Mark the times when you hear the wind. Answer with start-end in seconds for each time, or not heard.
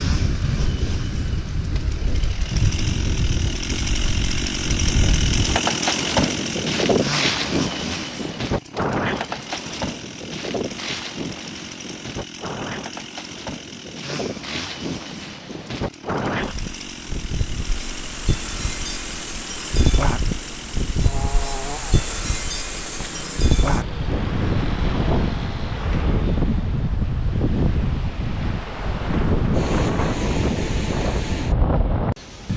0.0-32.5.